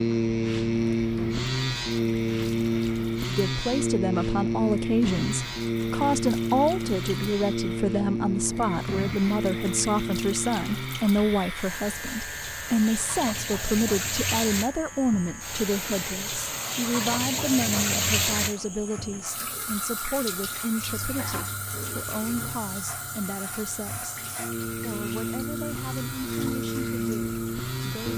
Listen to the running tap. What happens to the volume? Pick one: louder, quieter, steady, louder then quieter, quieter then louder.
louder then quieter.